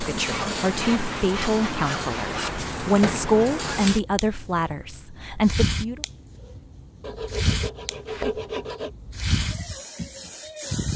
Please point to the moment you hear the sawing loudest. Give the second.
8 s.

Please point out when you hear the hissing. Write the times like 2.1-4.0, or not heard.
0.0-10.9.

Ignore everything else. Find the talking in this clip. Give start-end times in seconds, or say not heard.
0.0-6.0.